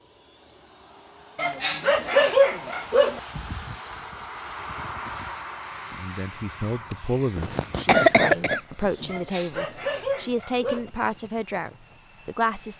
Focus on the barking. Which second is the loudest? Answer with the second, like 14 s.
2 s.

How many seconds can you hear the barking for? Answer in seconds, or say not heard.
4 s.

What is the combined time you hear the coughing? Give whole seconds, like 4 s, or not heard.
2 s.